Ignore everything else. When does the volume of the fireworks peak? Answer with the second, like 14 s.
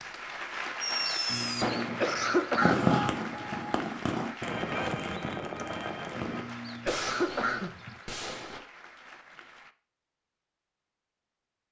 3 s.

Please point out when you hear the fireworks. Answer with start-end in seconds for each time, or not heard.
0.8-8.6.